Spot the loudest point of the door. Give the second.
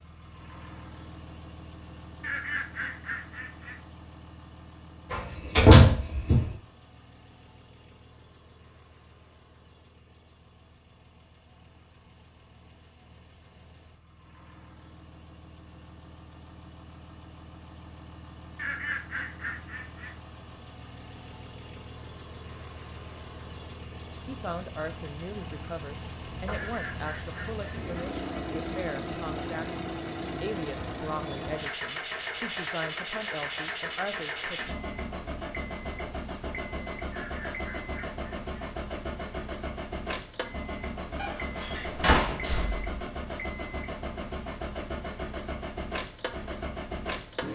6 s.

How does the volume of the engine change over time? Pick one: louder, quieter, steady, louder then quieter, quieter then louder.
louder.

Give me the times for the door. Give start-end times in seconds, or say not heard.
5.1-6.5, 26.2-26.7, 41.2-42.9.